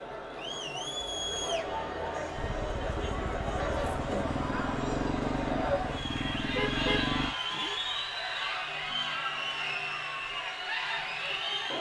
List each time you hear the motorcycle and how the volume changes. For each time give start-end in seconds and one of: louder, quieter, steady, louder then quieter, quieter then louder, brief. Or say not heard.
2.4-7.3 louder.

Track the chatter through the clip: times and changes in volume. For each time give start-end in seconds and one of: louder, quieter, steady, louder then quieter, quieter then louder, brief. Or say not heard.
0.0-11.7 steady.